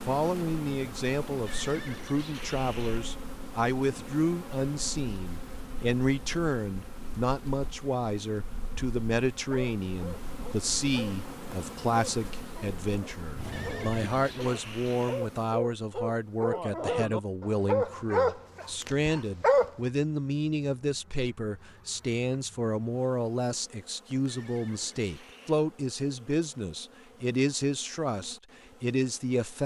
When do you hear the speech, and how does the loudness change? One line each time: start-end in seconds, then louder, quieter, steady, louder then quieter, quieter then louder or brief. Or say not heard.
0.1-29.6 steady.